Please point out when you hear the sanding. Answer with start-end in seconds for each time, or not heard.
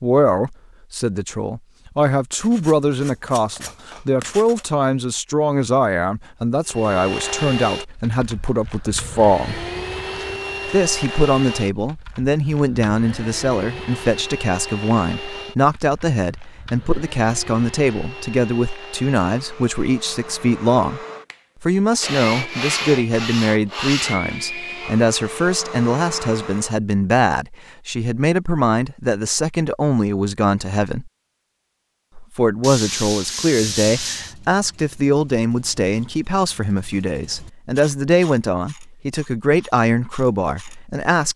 2.3-4.7, 22.0-24.4, 32.6-34.4.